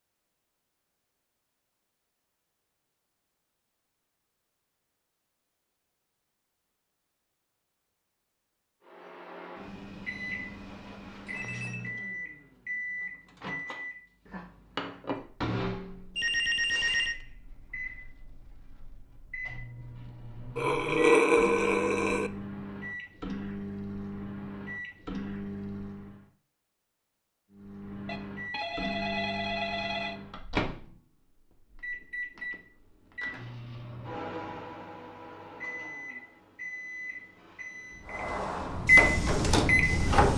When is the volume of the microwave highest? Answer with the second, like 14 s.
39 s.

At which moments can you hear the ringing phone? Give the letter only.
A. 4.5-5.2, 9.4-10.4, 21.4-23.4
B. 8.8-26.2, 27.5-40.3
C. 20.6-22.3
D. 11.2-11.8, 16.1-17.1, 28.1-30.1
D.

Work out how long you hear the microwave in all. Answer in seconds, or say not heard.
30 s.